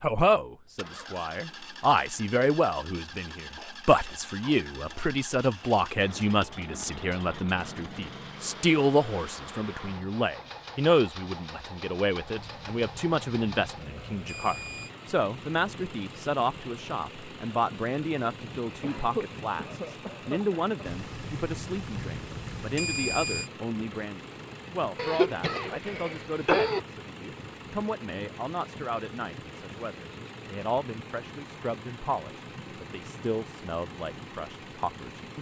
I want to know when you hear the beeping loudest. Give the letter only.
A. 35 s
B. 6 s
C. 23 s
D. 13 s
C.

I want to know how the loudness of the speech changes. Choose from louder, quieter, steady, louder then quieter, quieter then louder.
quieter.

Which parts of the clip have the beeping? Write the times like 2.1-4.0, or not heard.
12.3-14.9, 20.9-23.5.